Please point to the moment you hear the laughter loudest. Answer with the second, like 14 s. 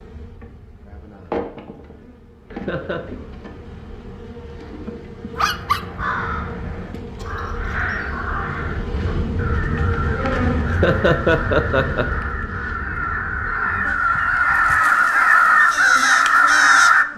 11 s.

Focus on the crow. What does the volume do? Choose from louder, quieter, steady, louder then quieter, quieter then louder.
louder.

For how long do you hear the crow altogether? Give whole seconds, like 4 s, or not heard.
12 s.